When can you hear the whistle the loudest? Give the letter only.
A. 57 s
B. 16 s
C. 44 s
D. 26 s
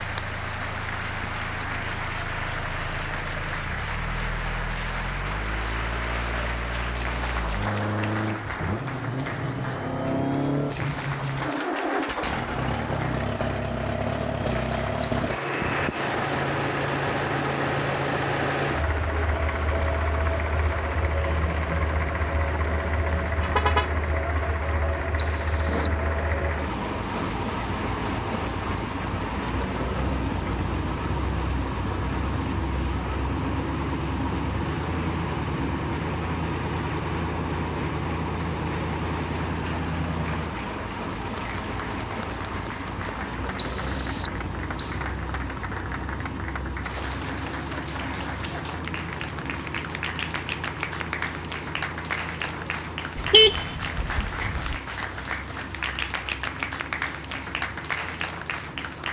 C.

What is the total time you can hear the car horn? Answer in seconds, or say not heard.
2 s.